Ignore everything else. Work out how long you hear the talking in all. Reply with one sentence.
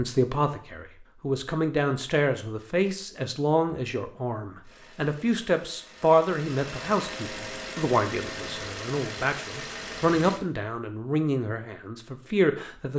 You can hear the talking for 13 seconds altogether.